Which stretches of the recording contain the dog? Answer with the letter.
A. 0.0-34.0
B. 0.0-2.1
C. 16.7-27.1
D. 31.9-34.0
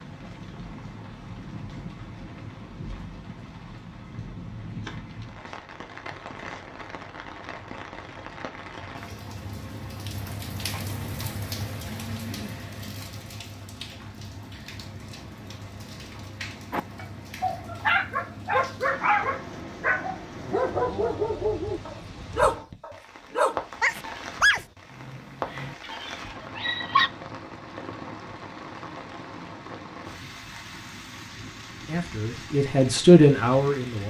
C.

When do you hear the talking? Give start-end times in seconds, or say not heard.
31.9-34.0.